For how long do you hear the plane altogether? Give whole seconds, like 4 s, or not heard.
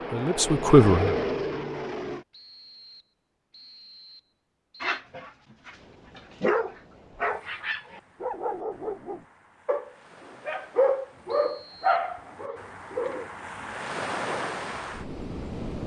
2 s.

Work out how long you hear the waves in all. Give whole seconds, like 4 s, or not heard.
10 s.